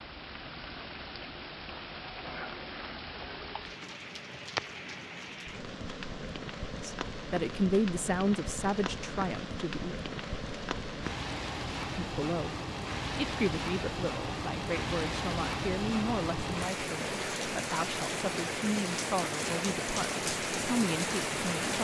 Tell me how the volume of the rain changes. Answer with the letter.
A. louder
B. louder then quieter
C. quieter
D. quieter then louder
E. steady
A.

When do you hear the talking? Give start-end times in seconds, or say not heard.
6.8-9.9, 11.8-12.6, 13.2-21.7.